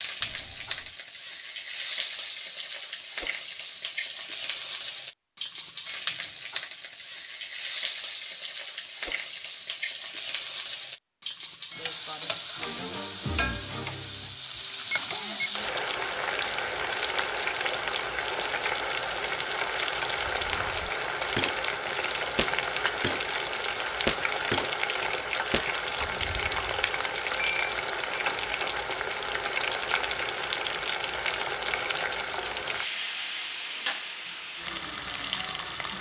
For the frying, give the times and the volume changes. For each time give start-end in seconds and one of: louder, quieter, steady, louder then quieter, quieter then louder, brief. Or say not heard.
0.0-35.9 steady.